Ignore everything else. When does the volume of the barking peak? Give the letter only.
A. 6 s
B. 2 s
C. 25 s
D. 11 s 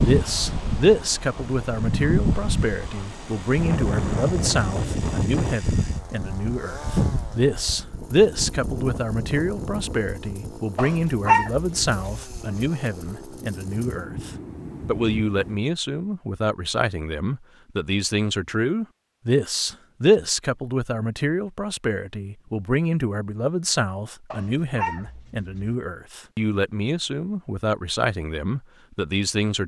D.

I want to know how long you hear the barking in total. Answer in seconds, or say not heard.
3 s.